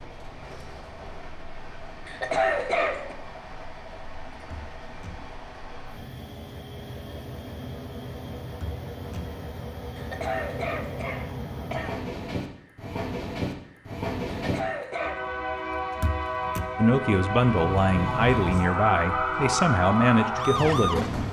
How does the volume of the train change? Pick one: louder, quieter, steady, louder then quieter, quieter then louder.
louder.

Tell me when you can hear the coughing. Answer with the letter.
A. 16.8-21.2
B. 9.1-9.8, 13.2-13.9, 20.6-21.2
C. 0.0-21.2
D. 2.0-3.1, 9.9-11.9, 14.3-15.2
D.